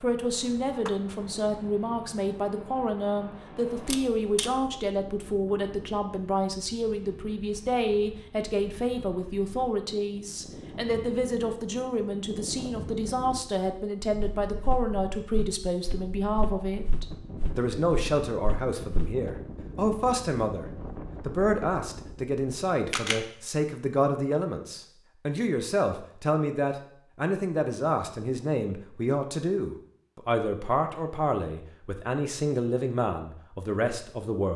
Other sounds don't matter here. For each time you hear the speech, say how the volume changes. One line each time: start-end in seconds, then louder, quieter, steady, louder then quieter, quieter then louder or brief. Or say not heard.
0.0-34.5 steady.